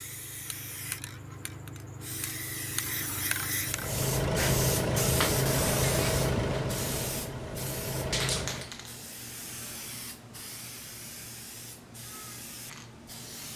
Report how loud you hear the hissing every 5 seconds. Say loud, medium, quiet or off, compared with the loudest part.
loud, loud, medium.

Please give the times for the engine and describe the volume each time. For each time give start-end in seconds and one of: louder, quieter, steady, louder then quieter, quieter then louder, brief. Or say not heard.
3.6-8.7 quieter.